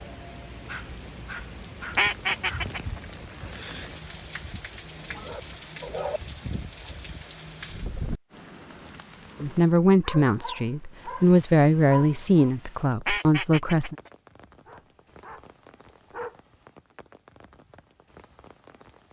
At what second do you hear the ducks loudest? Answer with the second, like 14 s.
2 s.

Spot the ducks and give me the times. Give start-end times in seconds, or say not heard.
1.9-3.0, 13.1-14.1.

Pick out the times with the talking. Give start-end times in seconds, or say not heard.
9.4-13.9.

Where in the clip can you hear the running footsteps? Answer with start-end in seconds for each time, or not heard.
not heard.